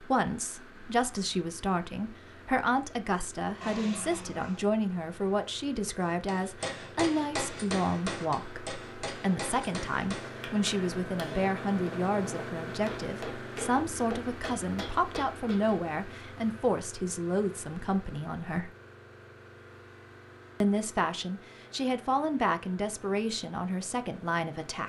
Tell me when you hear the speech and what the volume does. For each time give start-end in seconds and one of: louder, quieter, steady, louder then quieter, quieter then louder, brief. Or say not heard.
0.0-18.7 steady
20.6-24.8 steady.